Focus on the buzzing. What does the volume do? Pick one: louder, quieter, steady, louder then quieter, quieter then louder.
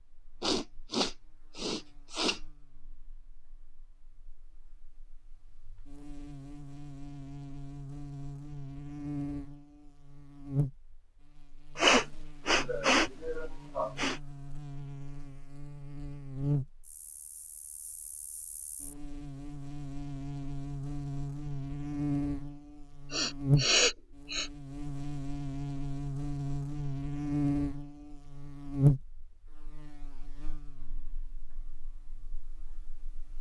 louder.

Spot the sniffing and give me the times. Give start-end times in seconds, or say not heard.
0.4-2.4, 11.8-14.2, 23.1-24.5.